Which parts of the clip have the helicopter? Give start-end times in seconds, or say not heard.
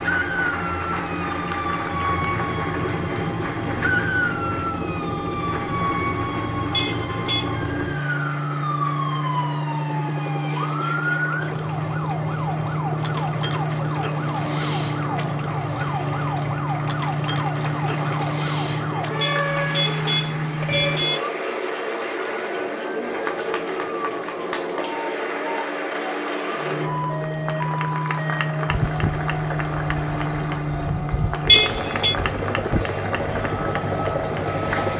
0.0-21.2, 26.6-34.9.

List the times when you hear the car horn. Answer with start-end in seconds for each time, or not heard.
6.7-7.5, 19.2-21.2, 31.4-32.1.